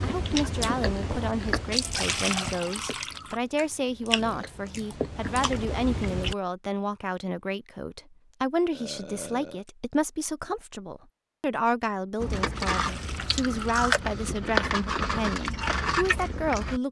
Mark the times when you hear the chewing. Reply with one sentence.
The chewing can be heard from 0.0 to 6.3 s and from 12.2 to 16.8 s.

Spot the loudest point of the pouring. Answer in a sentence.
The volume of the pouring peaks at 2 seconds.